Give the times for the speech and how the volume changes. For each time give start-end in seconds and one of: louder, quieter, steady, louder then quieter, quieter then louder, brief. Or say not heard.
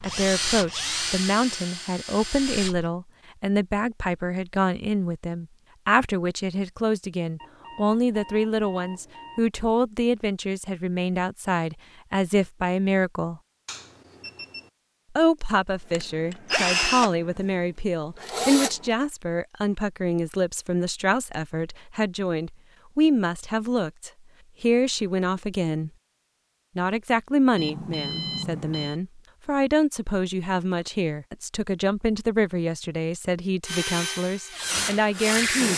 0.0-13.4 steady
15.2-25.9 steady
26.8-35.7 steady.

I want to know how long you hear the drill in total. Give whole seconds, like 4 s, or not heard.
8 s.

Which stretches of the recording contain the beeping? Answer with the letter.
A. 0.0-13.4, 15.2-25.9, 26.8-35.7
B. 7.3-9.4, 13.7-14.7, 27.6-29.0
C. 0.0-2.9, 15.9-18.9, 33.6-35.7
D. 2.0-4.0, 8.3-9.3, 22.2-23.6
B.